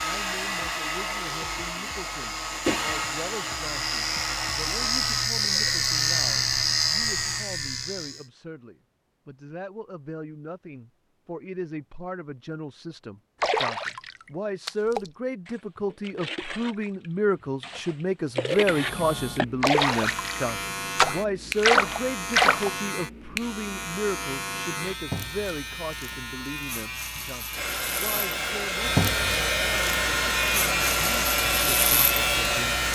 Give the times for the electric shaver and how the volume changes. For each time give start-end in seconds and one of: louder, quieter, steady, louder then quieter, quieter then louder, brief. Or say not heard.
0.0-8.2 louder
18.5-32.8 louder.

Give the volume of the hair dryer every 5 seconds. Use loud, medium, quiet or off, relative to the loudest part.
loud, medium, off, off, off, loud, loud.